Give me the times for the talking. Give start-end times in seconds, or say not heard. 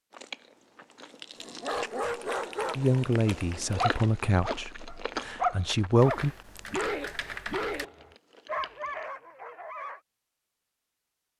2.8-6.3.